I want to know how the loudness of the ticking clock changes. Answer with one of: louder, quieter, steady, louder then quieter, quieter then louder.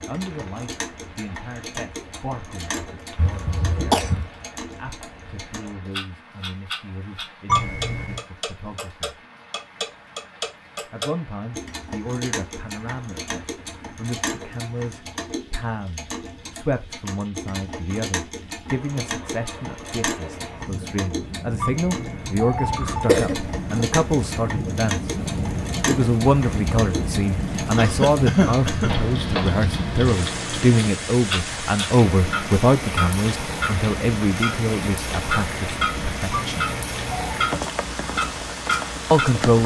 louder.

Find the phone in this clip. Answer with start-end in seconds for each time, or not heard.
7.5-8.2, 21.6-23.1, 36.3-37.3.